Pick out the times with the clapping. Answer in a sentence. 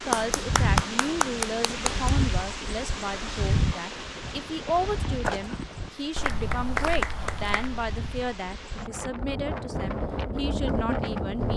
You can hear the clapping from 0.1 to 2.1 s and from 6.2 to 7.7 s.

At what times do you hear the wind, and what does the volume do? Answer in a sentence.
The wind can be heard from 0.0 to 11.5 s, getting quieter then louder.